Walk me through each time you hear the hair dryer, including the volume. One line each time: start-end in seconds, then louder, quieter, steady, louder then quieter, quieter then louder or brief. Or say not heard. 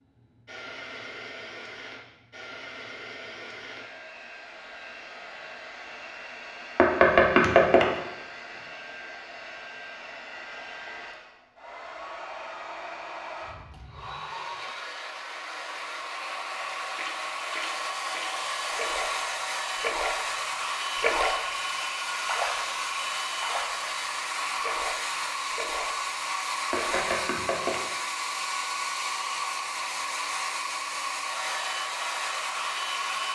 0.0-33.2 louder.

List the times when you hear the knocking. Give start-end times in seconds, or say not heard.
6.8-7.9, 26.7-27.8.